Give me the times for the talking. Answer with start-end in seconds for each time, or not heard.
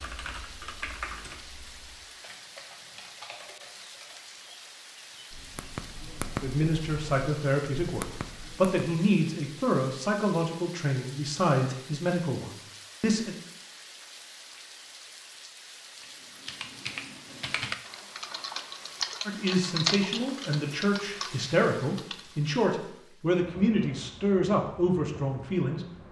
6.4-13.3, 19.2-25.8.